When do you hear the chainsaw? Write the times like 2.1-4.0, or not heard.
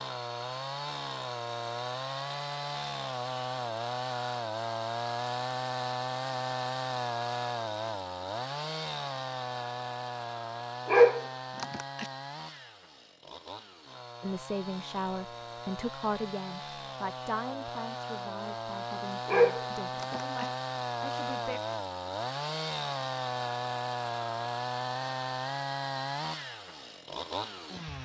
0.0-27.9.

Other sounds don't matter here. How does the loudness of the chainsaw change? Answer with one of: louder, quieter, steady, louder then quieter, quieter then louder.
quieter then louder.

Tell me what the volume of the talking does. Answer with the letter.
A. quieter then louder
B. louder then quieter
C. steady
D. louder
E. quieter
E.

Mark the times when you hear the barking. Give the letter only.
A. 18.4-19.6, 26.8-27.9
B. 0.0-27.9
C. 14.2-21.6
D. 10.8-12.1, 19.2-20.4
D.